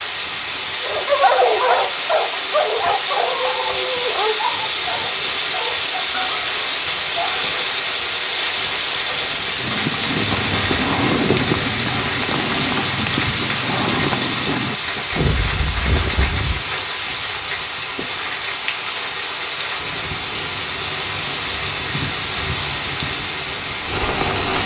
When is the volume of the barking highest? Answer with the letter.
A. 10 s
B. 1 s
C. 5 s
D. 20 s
B.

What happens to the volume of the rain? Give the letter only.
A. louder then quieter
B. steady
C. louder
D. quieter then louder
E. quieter
B.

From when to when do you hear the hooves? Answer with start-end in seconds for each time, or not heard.
9.6-16.6.